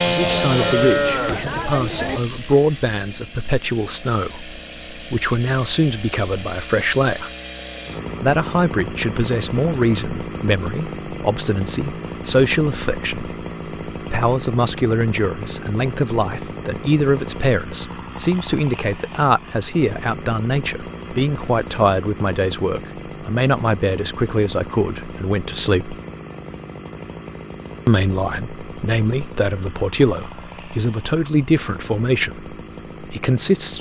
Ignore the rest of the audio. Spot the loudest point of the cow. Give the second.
1 s.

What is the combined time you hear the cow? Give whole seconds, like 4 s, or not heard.
2 s.